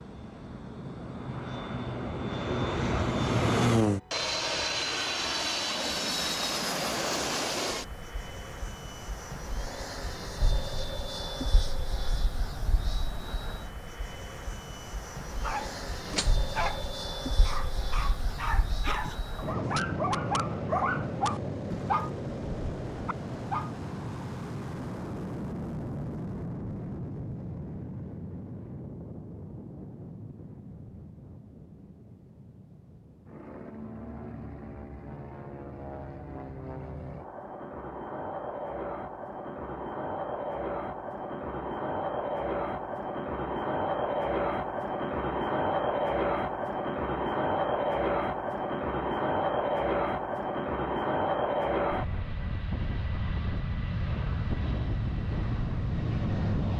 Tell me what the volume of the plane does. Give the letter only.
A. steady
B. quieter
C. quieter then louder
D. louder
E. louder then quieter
C.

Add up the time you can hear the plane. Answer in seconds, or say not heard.
57 s.